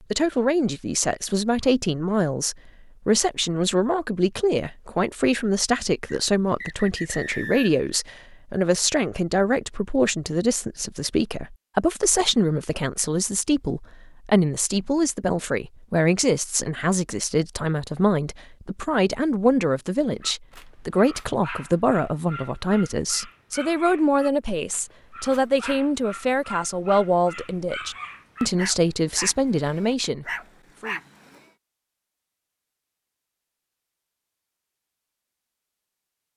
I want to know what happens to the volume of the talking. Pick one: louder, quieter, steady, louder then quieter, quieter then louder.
steady.